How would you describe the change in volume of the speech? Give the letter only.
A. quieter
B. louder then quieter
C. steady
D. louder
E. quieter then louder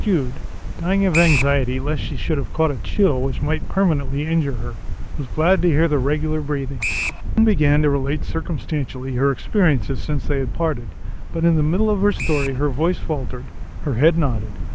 C.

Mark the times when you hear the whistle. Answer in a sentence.
You can hear the whistle from 1.1 to 1.6 s, from 6.8 to 7.2 s and from 12.2 to 12.6 s.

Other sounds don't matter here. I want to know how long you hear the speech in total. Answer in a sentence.
The speech can be heard for 15 seconds in total.